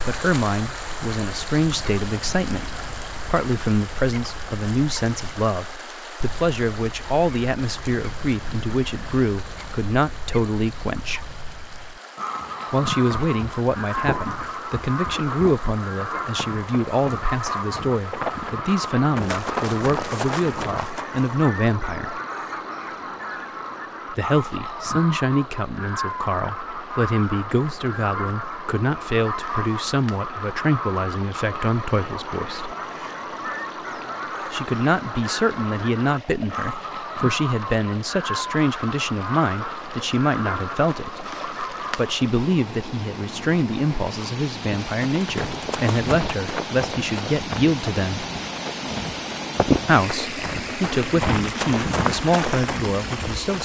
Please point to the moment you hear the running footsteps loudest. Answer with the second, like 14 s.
50 s.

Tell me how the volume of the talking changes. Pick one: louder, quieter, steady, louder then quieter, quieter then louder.
steady.